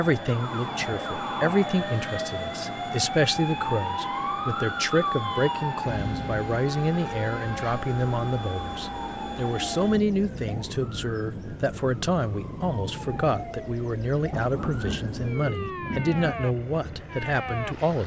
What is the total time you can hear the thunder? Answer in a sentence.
The thunder can be heard for 2 seconds in total.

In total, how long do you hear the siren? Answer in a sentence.
The siren can be heard for 18 seconds in total.